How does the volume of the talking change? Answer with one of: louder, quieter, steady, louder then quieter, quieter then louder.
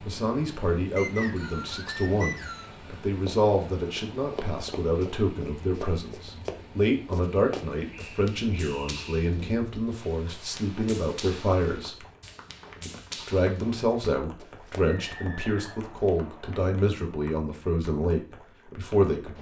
steady.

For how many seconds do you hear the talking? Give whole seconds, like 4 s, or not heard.
18 s.